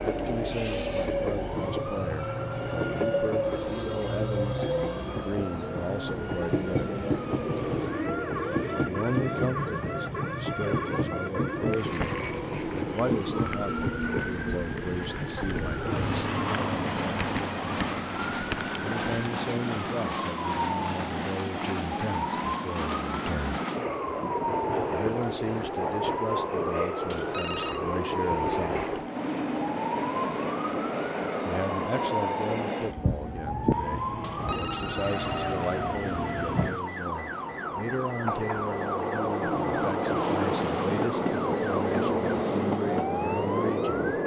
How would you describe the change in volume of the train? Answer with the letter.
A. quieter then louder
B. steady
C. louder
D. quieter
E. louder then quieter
B.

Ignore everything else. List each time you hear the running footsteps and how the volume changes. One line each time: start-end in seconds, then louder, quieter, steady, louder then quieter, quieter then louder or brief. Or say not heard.
not heard.